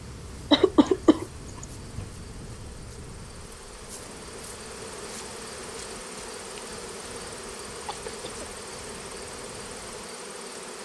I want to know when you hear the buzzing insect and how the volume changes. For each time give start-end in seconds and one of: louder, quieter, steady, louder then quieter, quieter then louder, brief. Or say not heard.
0.0-10.8 louder.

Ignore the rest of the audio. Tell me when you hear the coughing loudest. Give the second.
1 s.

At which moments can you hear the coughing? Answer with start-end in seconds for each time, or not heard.
0.5-2.0, 7.8-8.5.